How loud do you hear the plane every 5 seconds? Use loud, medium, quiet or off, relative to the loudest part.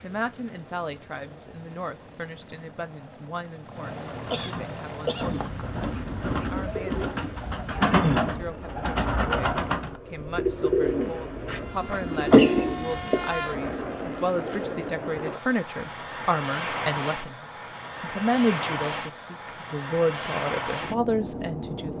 medium, medium, loud, loud, loud.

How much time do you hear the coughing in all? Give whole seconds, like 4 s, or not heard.
3 s.